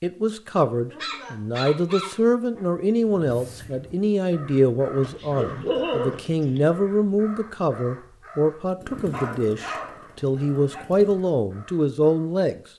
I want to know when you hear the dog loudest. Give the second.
6 s.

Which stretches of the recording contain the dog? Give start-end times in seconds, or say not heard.
0.9-2.6, 5.0-6.7, 8.9-10.8.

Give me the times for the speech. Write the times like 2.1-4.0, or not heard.
0.0-12.6.